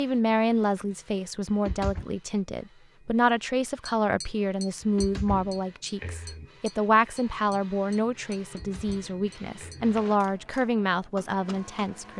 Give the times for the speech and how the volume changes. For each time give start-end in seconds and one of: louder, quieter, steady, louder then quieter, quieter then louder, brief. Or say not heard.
0.0-12.1 steady.